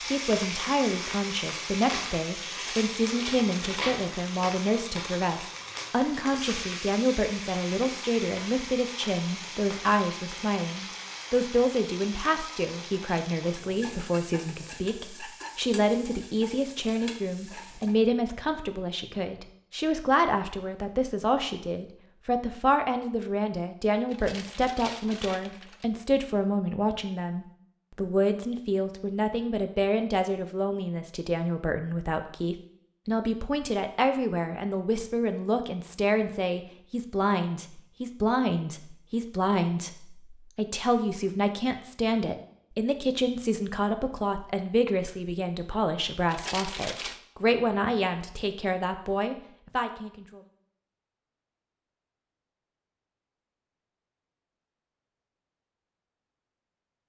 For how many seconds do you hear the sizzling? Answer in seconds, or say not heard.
18 s.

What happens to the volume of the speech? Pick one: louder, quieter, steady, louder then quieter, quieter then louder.
steady.